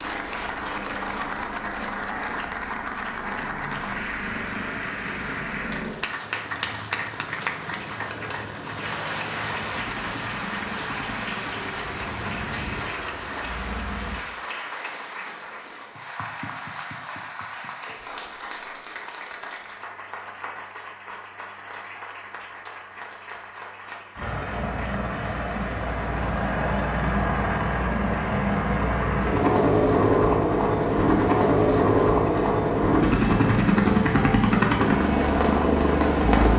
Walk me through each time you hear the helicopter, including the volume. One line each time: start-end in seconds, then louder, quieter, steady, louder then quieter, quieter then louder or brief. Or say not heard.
0.0-14.2 steady
24.1-36.5 louder.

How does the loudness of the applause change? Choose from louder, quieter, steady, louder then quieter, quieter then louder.
quieter.